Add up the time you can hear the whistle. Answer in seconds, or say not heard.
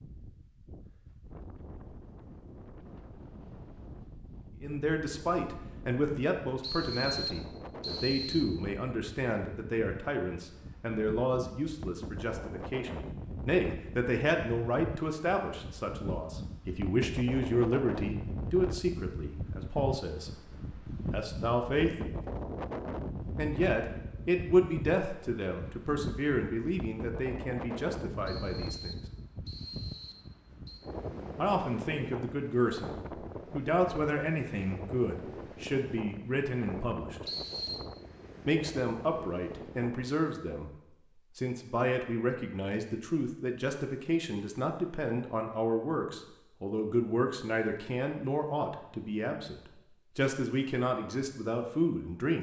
5 s.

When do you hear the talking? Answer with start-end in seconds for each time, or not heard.
4.6-20.3, 20.9-21.9, 23.4-29.0, 31.4-37.2, 38.5-40.7, 41.4-52.3.